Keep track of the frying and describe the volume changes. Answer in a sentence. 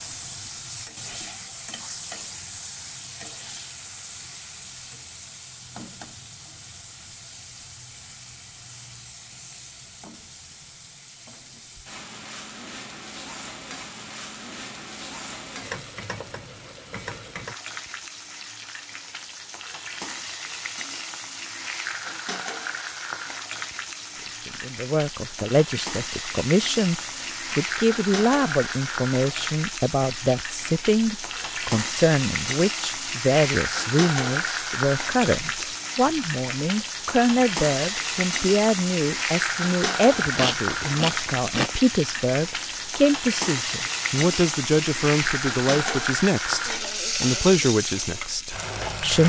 The volume of the frying goes up.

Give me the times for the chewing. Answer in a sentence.
You can hear the chewing from 40.1 to 41.7 s.